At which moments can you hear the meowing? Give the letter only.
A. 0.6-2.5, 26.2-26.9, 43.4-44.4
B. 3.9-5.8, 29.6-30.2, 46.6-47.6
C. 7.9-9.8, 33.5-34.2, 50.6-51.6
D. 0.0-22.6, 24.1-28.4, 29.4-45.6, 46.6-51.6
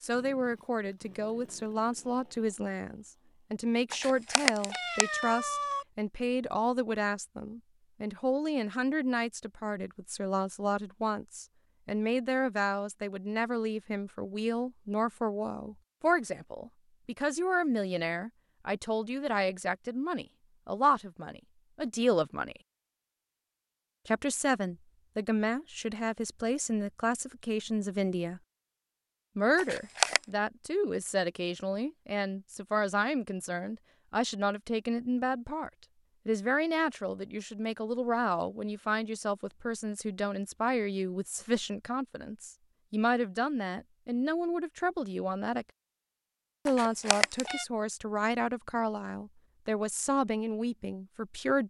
B.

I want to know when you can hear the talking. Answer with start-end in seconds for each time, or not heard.
0.0-22.6, 24.1-28.4, 29.4-45.6, 46.6-51.6.